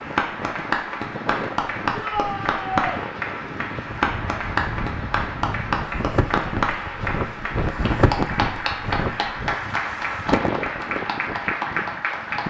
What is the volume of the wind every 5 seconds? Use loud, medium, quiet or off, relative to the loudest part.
medium, loud, loud.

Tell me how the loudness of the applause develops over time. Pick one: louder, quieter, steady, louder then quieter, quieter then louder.
steady.